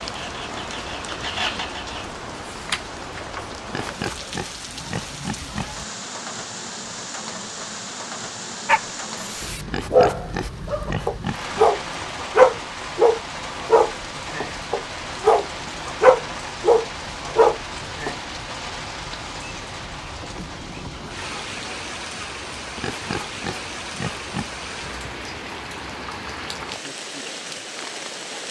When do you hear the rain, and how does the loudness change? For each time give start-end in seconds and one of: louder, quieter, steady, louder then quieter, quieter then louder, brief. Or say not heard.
0.0-28.4 steady.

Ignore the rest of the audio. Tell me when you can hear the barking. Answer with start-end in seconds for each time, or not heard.
8.7-18.1.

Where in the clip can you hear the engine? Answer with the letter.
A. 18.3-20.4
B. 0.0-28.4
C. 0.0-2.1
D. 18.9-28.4
C.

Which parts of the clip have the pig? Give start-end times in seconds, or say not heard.
3.6-5.7, 9.7-11.7, 22.8-24.5.